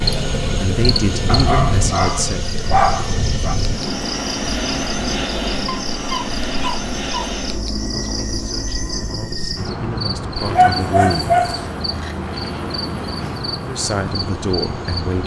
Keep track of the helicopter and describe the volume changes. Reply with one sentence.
The volume of the helicopter goes down.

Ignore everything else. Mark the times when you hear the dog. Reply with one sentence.
You can hear the dog from 1.2 to 3.5 s, from 5.7 to 7.3 s and from 10.6 to 12.2 s.